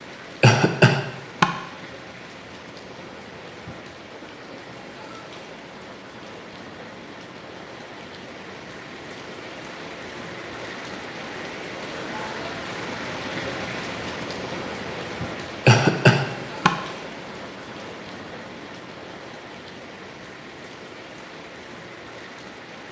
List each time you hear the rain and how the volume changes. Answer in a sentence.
You can hear the rain from 0.0 to 22.8 s, getting louder then quieter.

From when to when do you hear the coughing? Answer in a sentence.
The coughing can be heard from 0.4 to 1.4 s and from 15.7 to 16.7 s.